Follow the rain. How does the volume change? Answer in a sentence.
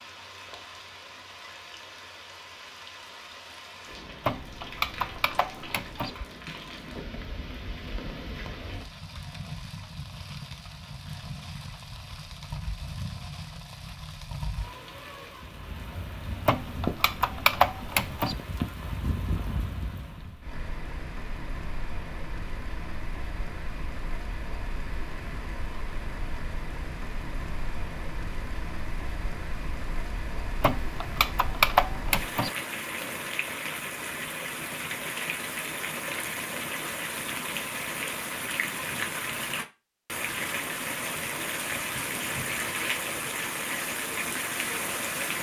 The volume of the rain goes up.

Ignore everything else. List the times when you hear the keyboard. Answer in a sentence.
The keyboard can be heard from 4.2 to 6.1 s, from 16.4 to 18.4 s and from 30.6 to 32.5 s.